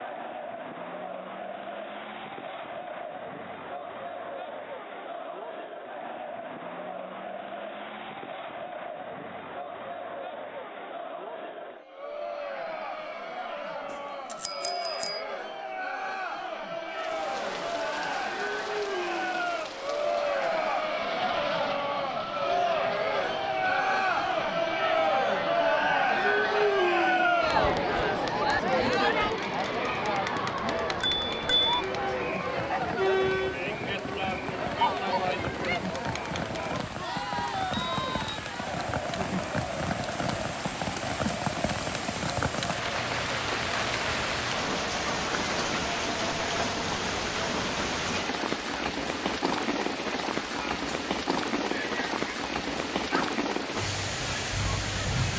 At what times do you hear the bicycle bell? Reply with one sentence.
You can hear the bicycle bell from 13.9 to 15.2 s, from 31.0 to 31.8 s and from 37.8 to 38.4 s.